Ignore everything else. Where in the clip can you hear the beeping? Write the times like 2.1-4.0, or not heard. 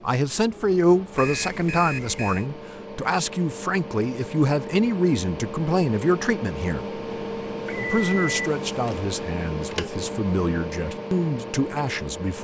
1.1-2.5, 7.7-9.0.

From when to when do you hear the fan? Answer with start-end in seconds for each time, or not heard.
0.0-12.3.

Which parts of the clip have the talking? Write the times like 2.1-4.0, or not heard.
0.0-7.0, 7.8-12.3.